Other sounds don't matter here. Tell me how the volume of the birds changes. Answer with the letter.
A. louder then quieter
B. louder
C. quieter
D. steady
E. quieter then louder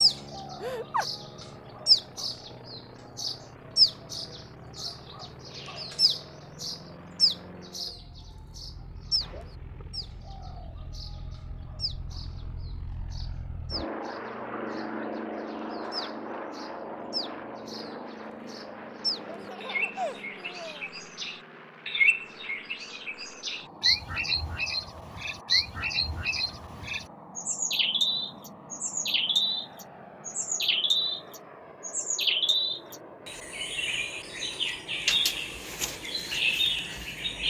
E.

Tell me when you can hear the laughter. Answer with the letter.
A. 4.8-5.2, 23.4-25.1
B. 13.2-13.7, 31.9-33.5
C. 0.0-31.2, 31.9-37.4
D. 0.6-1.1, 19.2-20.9
D.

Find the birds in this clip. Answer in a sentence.
You can hear the birds from 0.0 to 31.2 s and from 31.9 to 37.4 s.